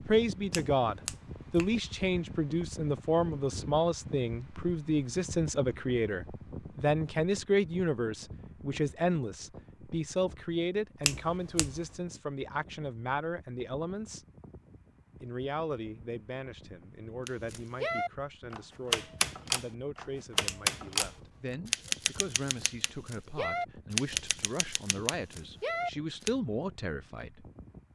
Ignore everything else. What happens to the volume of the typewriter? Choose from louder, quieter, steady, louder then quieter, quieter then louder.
quieter.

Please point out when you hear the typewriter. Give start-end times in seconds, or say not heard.
17.2-26.3.